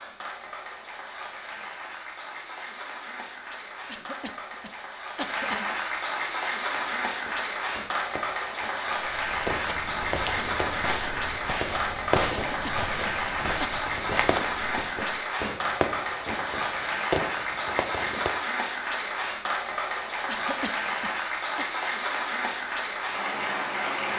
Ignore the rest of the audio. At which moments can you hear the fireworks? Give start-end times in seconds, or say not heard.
7.0-18.3.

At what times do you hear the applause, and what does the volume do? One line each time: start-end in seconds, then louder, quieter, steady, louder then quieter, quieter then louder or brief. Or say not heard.
0.0-24.1 louder.